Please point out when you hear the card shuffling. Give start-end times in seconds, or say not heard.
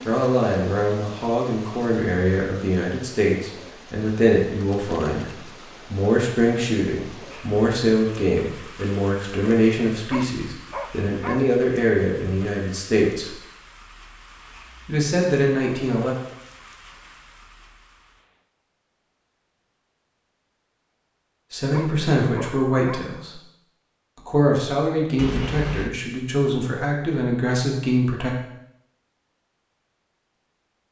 4.7-5.2, 25.1-25.9.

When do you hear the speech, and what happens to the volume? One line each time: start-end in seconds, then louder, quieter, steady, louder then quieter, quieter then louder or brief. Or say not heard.
0.1-13.3 steady
14.8-16.1 brief
21.5-23.4 brief
24.1-28.3 steady.